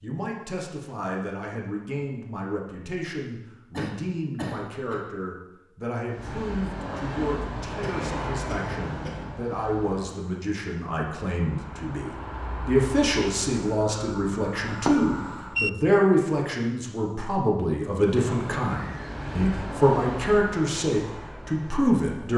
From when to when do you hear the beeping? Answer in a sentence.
The beeping can be heard from 14.7 to 15.7 s.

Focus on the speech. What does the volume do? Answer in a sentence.
The volume of the speech goes up.